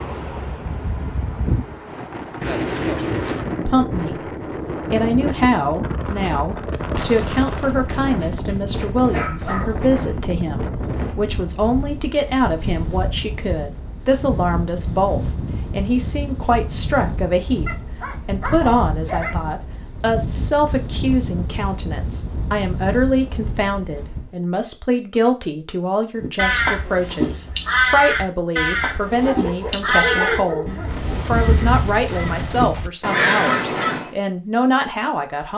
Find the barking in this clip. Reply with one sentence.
The barking can be heard from 7.8 to 9.9 s, from 17.6 to 19.4 s and from 29.1 to 31.3 s.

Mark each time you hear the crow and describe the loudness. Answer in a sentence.
You can hear the crow from 26.2 to 34.1 s, getting quieter then louder.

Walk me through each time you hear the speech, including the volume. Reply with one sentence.
You can hear the speech briefly from 3.6 to 4.3 s; and from 4.9 to 35.5 s, at a steady volume.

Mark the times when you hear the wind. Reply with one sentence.
The wind can be heard from 0.0 to 24.4 s.